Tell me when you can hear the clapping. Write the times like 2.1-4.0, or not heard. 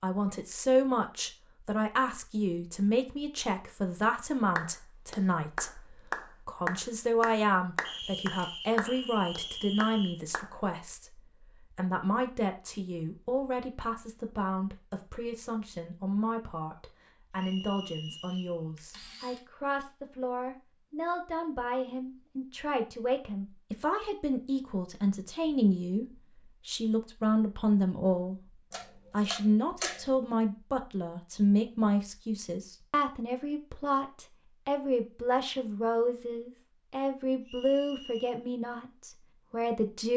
4.5-10.5.